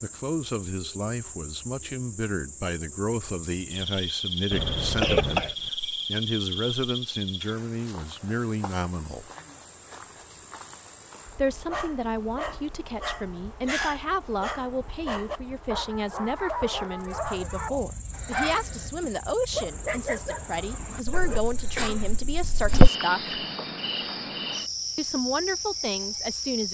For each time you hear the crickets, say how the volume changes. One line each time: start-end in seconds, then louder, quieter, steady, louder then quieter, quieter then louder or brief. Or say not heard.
0.0-26.7 quieter then louder.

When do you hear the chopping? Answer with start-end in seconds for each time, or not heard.
not heard.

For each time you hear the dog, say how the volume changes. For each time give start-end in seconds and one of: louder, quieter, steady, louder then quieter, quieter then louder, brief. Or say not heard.
11.7-21.4 steady.